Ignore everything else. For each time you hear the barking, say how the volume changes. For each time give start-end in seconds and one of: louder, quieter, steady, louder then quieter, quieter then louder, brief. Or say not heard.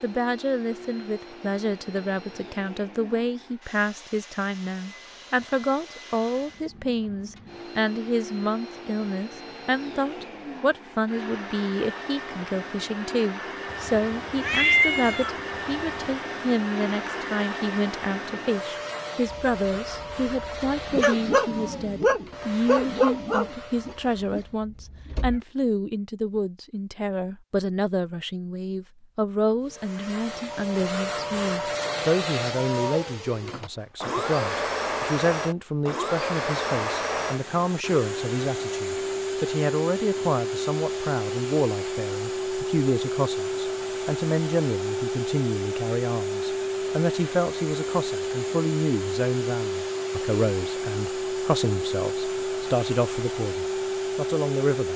19.3-25.4 louder then quieter.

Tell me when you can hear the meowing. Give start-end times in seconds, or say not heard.
13.7-16.1.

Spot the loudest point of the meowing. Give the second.
15 s.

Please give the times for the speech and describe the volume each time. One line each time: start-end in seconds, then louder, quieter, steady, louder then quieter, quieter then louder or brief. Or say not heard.
0.0-54.9 steady.